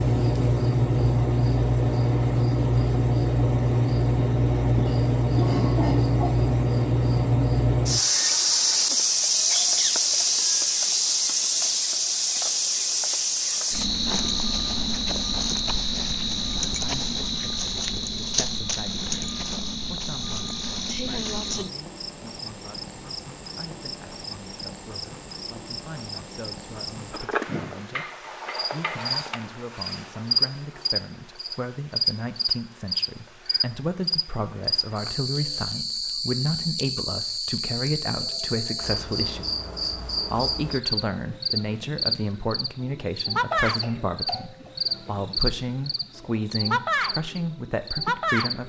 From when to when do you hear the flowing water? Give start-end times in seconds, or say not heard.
not heard.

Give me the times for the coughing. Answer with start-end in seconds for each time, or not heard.
4.8-6.5, 43.5-44.7.